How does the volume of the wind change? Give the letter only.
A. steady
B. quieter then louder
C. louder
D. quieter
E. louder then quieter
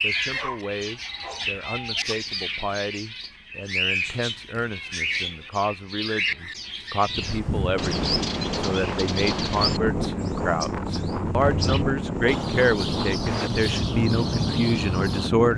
A.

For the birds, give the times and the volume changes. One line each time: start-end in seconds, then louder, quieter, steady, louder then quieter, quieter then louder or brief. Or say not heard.
0.0-15.3 steady.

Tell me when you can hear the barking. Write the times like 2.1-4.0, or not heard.
0.1-2.1.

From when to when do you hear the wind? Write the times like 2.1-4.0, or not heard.
7.0-15.5.